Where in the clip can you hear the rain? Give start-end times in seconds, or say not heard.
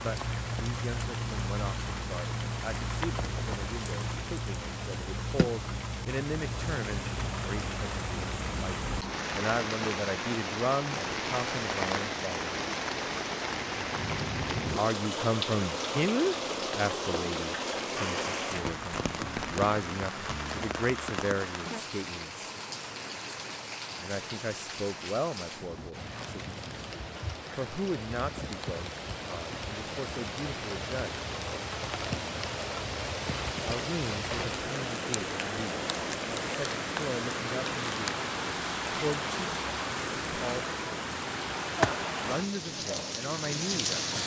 0.0-44.2.